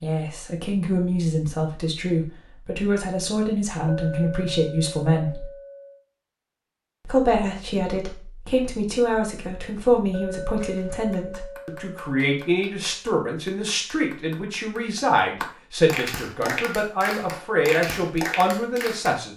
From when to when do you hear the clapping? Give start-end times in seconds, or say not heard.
10.6-19.2.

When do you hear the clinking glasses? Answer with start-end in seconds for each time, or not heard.
3.9-6.0, 10.1-12.3.